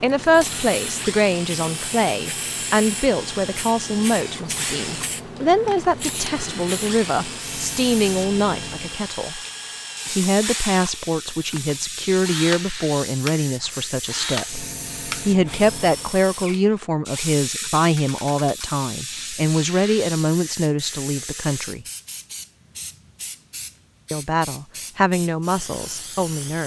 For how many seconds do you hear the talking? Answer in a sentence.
You can hear the talking for 24 seconds altogether.